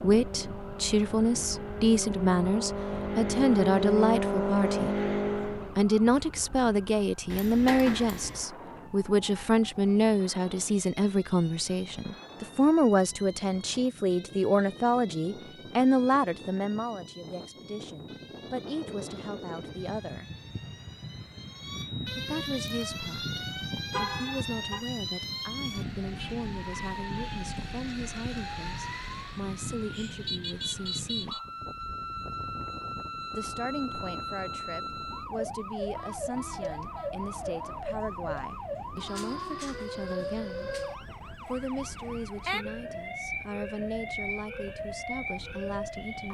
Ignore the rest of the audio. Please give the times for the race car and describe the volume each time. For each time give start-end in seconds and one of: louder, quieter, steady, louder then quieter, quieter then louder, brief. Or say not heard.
0.0-5.8 louder.